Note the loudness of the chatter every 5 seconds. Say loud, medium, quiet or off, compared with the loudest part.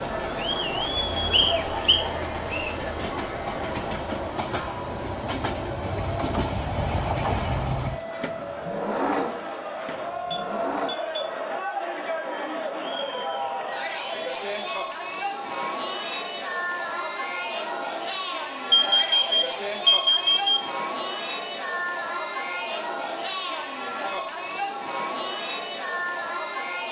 loud, medium, loud, loud, loud, loud.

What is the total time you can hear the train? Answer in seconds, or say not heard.
11 s.